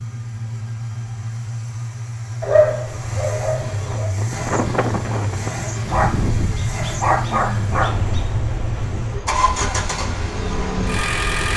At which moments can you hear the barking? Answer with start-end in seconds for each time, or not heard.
2.4-4.2, 5.9-8.2.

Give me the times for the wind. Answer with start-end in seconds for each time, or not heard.
3.8-11.5.